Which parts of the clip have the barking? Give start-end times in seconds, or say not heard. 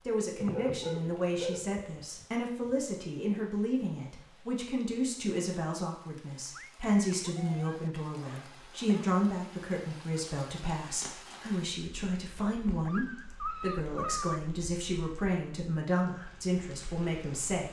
0.3-2.8, 6.5-9.2, 12.3-14.4.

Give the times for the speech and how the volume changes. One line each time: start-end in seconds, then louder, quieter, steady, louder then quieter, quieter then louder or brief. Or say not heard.
0.0-17.6 steady.